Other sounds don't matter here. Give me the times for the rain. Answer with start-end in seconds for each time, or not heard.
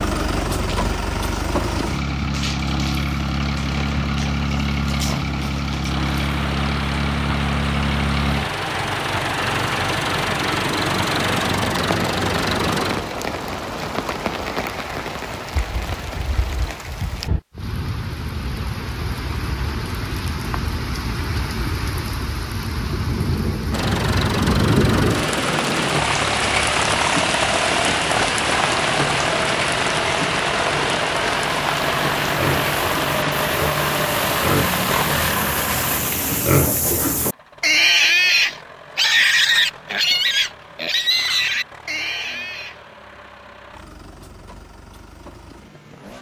0.1-36.6.